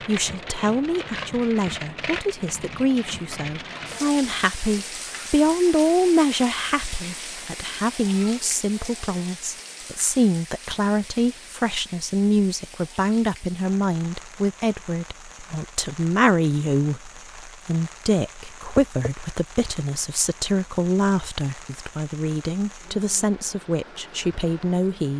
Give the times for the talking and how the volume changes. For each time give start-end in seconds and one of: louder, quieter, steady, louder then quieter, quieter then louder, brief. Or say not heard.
0.1-25.1 steady.